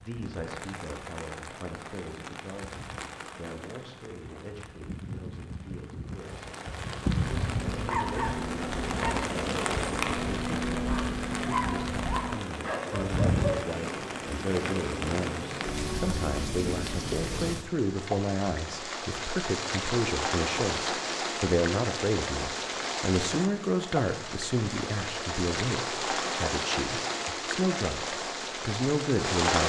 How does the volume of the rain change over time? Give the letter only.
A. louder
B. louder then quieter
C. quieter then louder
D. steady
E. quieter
A.